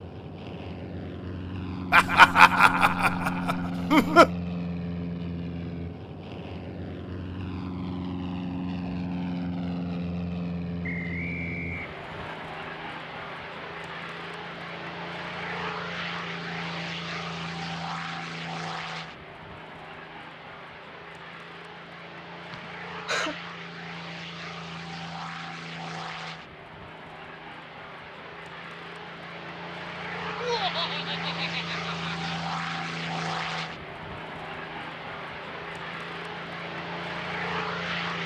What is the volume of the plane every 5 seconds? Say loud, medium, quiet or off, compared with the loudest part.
loud, loud, loud, loud, medium, medium, loud, loud.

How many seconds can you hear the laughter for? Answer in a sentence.
The laughter can be heard for 5 seconds in total.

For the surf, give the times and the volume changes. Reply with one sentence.
You can't hear the surf here.